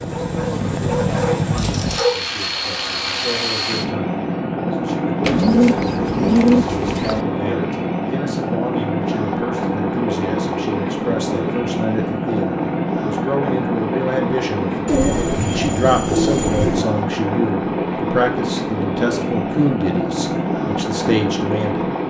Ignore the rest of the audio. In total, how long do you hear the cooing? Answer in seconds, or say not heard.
4 s.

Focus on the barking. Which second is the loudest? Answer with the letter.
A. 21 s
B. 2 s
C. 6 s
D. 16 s
B.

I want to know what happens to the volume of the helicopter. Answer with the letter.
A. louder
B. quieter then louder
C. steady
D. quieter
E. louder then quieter
C.